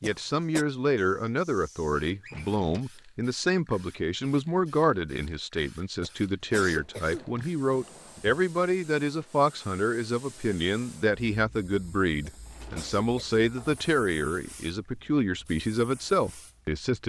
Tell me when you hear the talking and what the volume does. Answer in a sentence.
You can hear the talking from 0.0 to 17.0 s, at a steady volume.